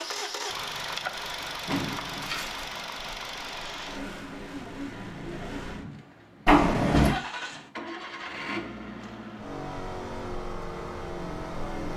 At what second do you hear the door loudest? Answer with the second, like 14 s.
7 s.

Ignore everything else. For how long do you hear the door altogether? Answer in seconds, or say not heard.
2 s.